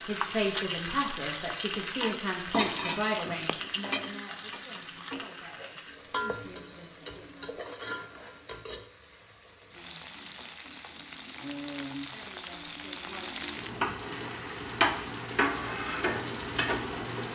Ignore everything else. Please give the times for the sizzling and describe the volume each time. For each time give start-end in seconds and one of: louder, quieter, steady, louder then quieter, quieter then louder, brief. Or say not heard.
0.0-17.3 quieter then louder.